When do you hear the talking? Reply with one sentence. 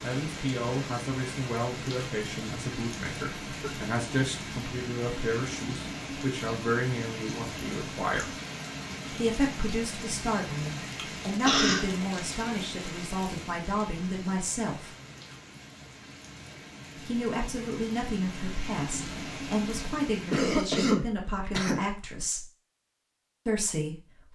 You can hear the talking from 0.0 to 8.3 s, from 9.1 to 14.9 s, from 17.1 to 22.5 s and from 23.4 to 24.0 s.